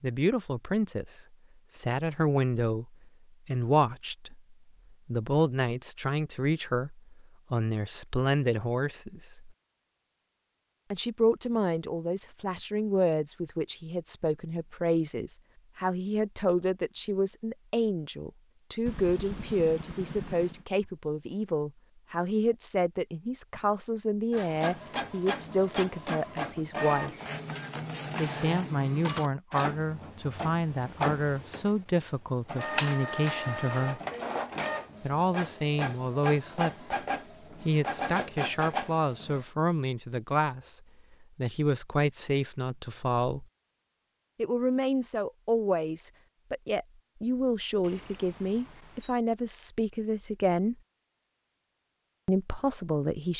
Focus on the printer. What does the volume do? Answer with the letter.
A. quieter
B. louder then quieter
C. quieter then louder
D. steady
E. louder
D.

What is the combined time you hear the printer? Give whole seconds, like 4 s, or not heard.
15 s.